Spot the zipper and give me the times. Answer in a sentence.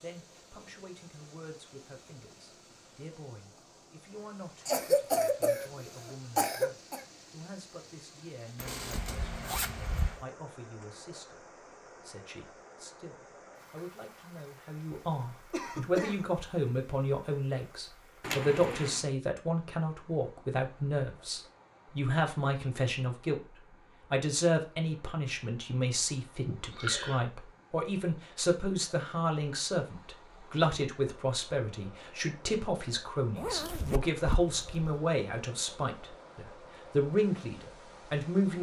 The zipper can be heard from 8.6 to 10.2 s, from 18.2 to 19.1 s and from 33.4 to 34.9 s.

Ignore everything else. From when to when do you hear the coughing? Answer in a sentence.
The coughing can be heard from 4.7 to 7.0 s, from 15.5 to 16.3 s and from 26.4 to 27.2 s.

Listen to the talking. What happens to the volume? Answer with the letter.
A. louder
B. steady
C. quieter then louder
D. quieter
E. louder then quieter
A.